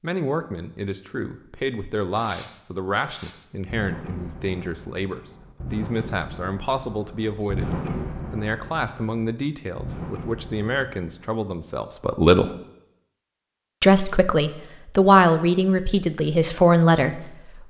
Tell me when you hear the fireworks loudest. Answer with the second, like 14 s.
8 s.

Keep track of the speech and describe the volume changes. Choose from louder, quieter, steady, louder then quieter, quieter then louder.
louder.